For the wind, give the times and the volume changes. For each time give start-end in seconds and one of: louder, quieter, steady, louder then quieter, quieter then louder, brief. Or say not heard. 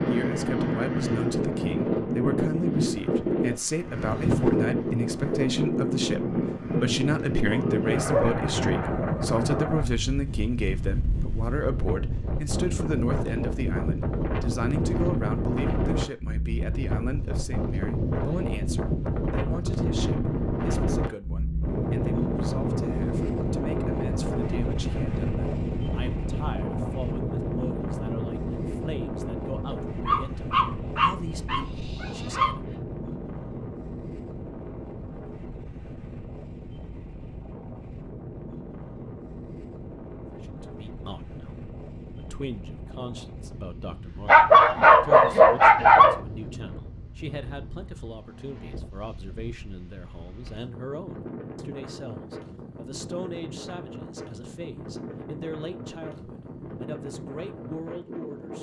0.0-58.5 quieter.